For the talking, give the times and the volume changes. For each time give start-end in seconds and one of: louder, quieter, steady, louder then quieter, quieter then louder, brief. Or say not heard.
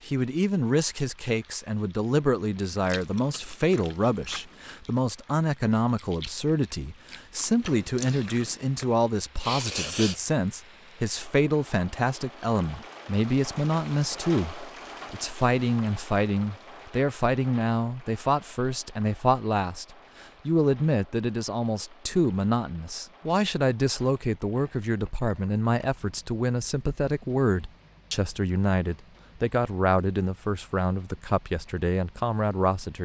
0.1-19.9 steady
20.4-33.0 steady.